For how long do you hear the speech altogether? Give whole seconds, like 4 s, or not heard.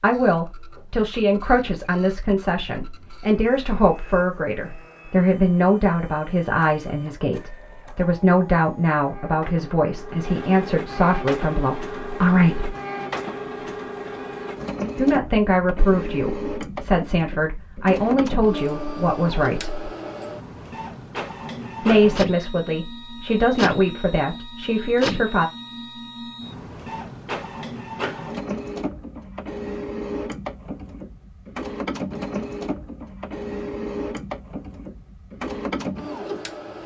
21 s.